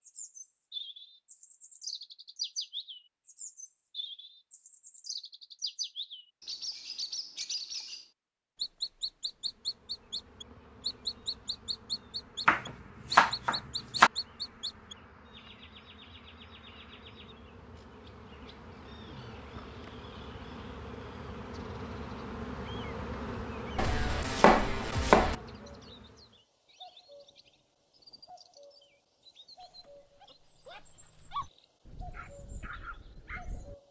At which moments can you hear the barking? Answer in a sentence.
The barking can be heard from 29.6 to 33.8 s.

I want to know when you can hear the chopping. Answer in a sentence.
The chopping can be heard from 12.4 to 14.1 s and from 23.8 to 25.4 s.